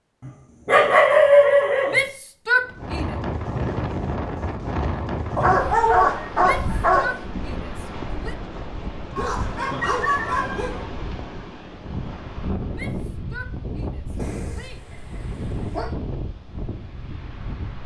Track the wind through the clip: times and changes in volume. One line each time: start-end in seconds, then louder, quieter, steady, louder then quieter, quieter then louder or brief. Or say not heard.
2.6-17.8 quieter.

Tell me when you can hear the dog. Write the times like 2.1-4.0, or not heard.
0.2-2.0, 5.3-7.2, 9.2-10.8, 14.2-15.8.